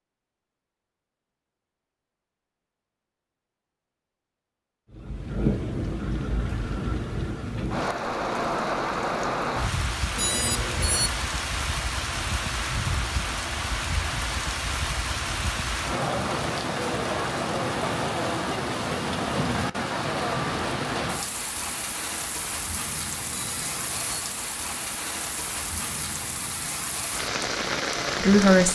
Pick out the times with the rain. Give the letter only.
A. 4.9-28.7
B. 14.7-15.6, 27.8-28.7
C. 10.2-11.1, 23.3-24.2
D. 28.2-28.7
A.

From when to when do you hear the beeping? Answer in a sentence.
The beeping can be heard from 10.2 to 11.1 s and from 23.3 to 24.2 s.